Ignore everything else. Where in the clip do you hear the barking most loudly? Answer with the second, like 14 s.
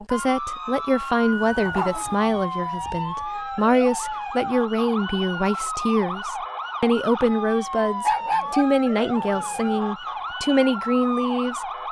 8 s.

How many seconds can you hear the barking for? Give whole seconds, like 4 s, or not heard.
4 s.